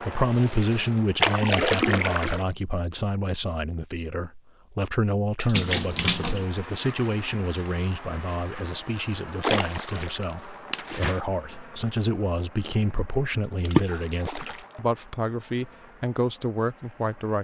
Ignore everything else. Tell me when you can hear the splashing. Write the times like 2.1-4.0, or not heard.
1.2-2.5, 5.3-6.5, 9.4-11.2, 13.7-14.6.